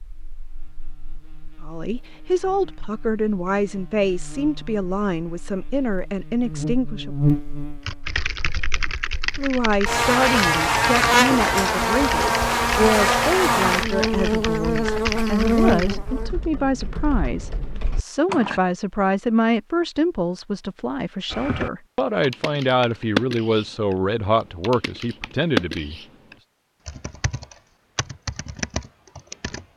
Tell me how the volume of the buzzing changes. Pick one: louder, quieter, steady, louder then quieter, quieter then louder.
louder.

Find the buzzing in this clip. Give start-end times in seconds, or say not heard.
0.0-16.3.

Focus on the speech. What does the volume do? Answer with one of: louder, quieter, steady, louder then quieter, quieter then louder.
steady.